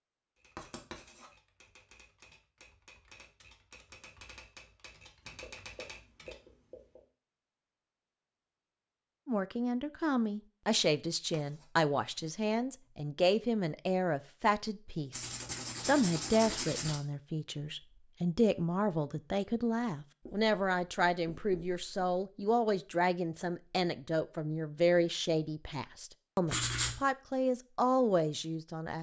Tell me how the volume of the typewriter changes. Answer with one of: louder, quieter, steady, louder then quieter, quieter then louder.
louder.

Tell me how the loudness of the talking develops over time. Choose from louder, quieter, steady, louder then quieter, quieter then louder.
steady.